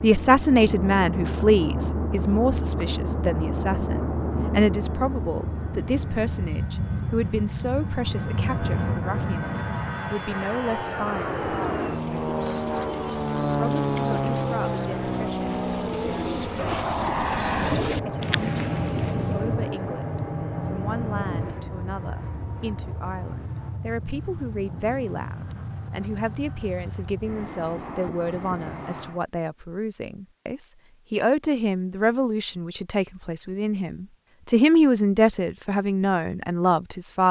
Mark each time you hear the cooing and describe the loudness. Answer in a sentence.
The cooing can be heard from 11.8 to 19.6 s, getting louder.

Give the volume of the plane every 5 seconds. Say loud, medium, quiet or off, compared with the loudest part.
loud, loud, loud, loud, medium, medium, off, off.